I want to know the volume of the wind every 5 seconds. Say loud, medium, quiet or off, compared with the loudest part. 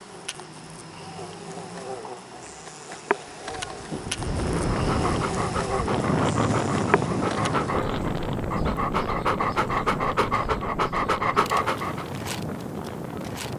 loud, loud, medium.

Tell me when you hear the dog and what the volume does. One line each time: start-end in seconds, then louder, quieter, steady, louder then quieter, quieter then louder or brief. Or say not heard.
4.7-12.1 louder.